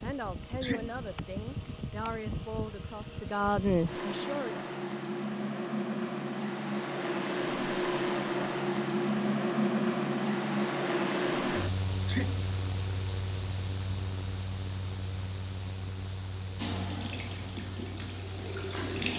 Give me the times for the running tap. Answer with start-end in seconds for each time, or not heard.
16.6-19.1.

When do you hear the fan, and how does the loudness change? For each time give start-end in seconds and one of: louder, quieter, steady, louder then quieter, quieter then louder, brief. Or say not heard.
0.0-19.1 louder then quieter.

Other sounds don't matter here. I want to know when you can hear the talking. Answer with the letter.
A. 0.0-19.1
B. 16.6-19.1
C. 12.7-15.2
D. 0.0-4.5
D.